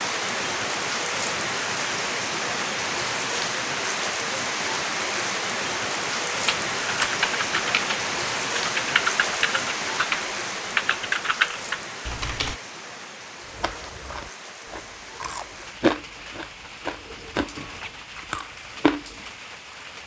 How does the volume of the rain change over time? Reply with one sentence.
The volume of the rain goes down.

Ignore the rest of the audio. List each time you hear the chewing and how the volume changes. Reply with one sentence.
The chewing can be heard from 13.4 to 19.2 s, getting louder then quieter.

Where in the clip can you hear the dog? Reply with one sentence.
You can't hear the dog here.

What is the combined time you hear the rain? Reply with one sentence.
The rain can be heard for 20 seconds in total.